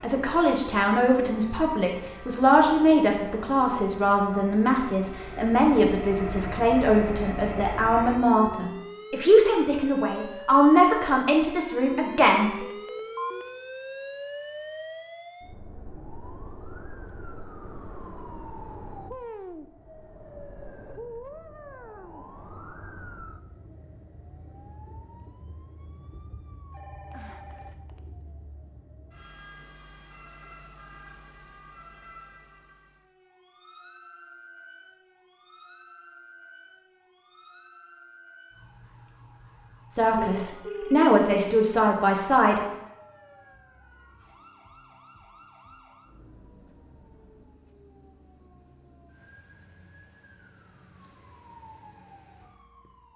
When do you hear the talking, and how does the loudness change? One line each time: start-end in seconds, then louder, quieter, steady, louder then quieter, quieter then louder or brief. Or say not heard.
0.0-12.6 steady
39.9-42.6 brief.